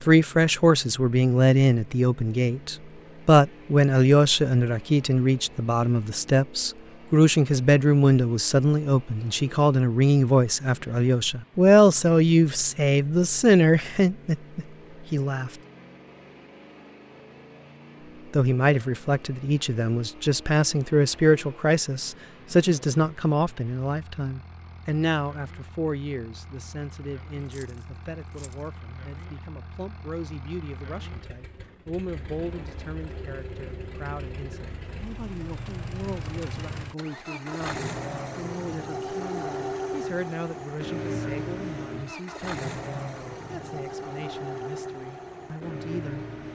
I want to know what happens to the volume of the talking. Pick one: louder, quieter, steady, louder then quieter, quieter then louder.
quieter.